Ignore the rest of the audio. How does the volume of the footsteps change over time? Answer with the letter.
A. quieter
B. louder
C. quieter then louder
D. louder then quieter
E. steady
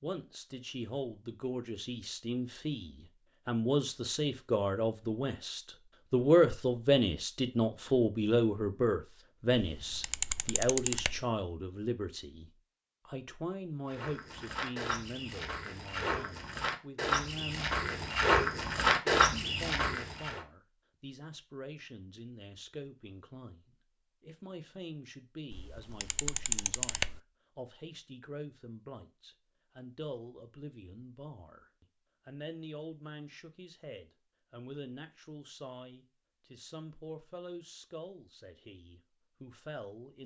B.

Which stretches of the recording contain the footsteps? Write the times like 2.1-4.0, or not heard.
13.9-20.4.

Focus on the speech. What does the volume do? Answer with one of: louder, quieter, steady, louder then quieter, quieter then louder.
quieter.